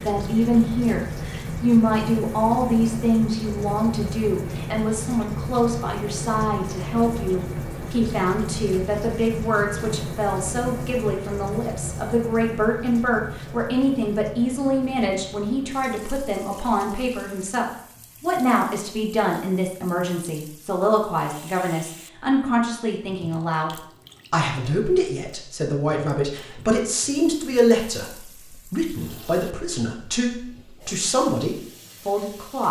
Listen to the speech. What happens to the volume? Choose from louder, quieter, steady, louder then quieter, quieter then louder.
steady.